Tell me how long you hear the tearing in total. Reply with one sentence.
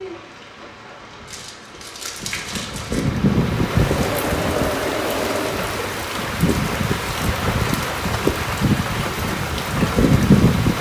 You can hear the tearing for 2 seconds altogether.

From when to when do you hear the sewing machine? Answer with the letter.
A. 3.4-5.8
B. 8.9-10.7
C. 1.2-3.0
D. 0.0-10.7
A.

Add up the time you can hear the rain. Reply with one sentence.
You can hear the rain for 11 seconds altogether.